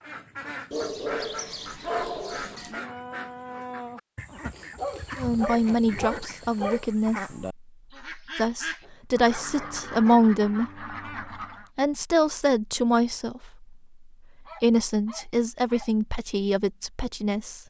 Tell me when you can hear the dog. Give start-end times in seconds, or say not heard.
0.7-2.9, 4.8-6.9, 8.8-10.2, 14.4-15.9.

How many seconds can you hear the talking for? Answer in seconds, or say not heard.
10 s.